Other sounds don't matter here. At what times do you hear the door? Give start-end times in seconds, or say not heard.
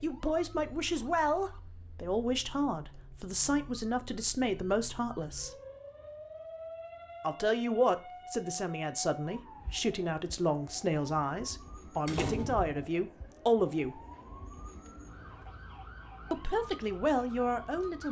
12.1-12.8.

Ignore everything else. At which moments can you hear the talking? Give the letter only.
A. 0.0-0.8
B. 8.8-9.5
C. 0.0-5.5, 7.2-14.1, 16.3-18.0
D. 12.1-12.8
C.